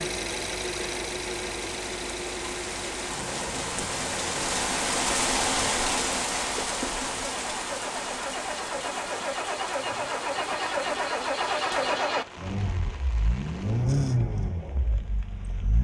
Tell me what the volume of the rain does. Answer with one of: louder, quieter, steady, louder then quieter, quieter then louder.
louder then quieter.